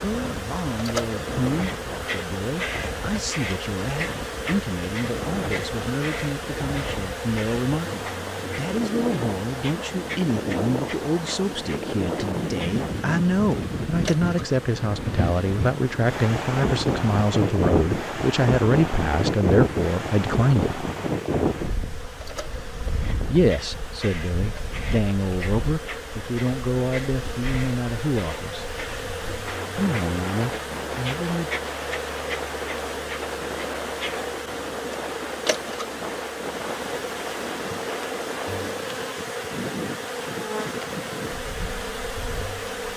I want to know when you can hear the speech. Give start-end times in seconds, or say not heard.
0.0-20.8, 23.2-28.7, 29.8-31.5.